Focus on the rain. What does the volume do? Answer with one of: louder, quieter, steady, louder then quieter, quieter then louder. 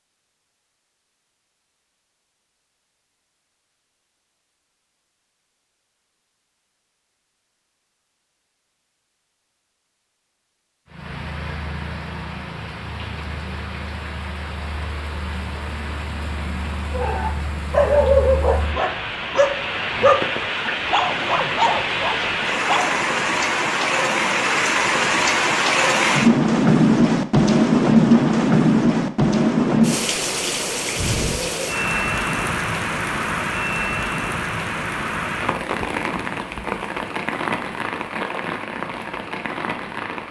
louder then quieter.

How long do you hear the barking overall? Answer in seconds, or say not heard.
6 s.